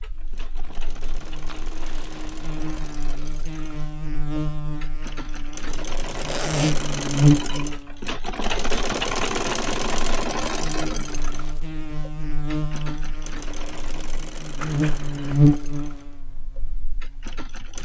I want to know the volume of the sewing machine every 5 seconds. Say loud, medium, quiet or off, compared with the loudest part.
quiet, loud, medium, quiet.